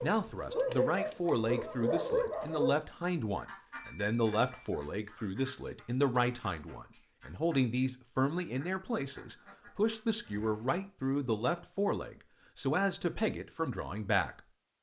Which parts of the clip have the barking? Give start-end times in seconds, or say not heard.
0.0-2.8.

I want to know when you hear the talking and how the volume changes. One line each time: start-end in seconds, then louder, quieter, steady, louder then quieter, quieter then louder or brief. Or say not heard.
0.0-14.7 steady.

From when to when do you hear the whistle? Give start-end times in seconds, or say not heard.
not heard.